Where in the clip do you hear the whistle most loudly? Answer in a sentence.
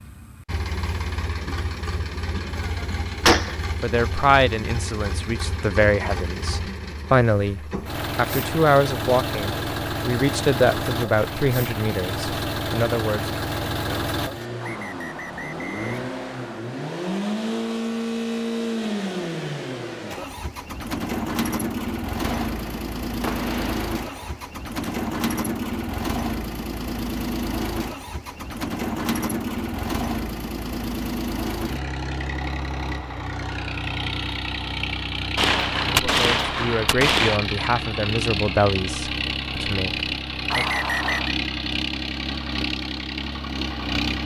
The volume of the whistle peaks at 41 seconds.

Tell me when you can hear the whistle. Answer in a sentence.
You can hear the whistle from 14.6 to 16.6 s and from 40.5 to 41.4 s.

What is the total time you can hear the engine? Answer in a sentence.
The engine can be heard for 44 seconds in total.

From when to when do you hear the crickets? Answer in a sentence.
The crickets can't be heard in this clip.